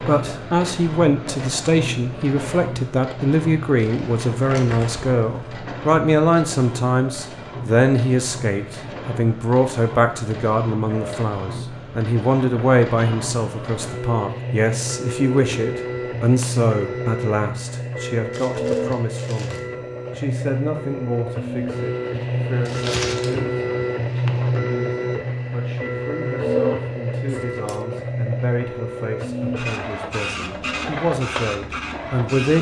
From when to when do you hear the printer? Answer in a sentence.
The printer can be heard from 0.0 to 32.5 s.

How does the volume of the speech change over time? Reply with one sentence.
The volume of the speech goes down.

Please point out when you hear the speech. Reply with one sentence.
The speech can be heard from 0.1 to 32.5 s.